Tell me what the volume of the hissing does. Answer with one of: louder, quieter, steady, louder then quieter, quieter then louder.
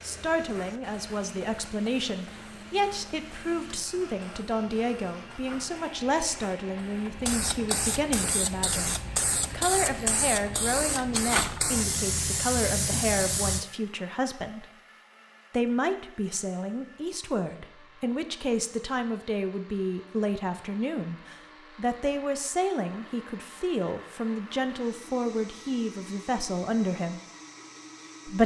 louder.